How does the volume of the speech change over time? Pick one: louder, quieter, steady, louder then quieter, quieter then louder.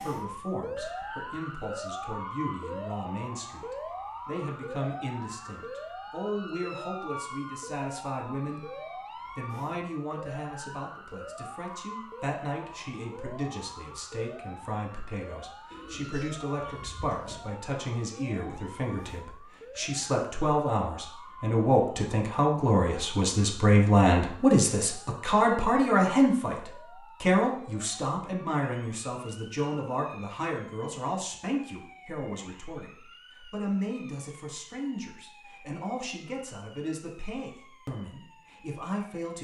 louder then quieter.